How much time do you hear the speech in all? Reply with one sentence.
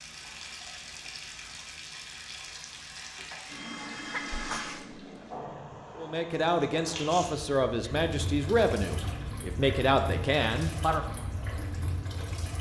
You can hear the speech for 5 seconds altogether.